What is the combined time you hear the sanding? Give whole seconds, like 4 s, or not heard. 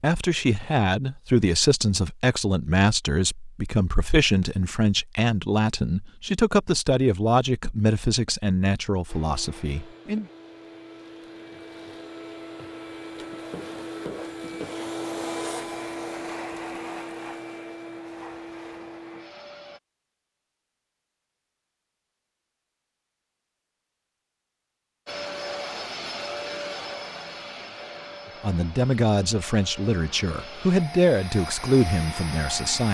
not heard.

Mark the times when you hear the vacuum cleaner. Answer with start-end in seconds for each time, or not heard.
9.1-19.8, 25.1-32.8.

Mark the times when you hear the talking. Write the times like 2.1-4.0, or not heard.
0.0-10.2, 28.4-32.8.